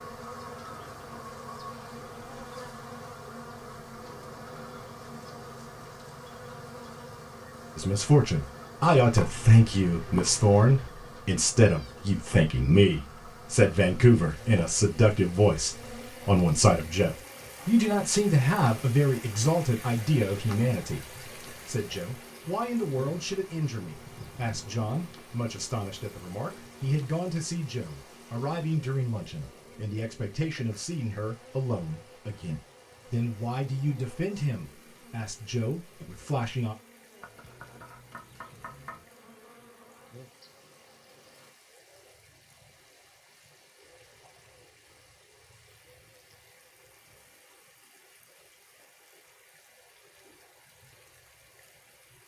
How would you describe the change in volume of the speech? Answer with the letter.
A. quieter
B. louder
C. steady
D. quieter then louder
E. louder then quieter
A.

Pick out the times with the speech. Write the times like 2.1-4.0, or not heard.
7.8-36.8.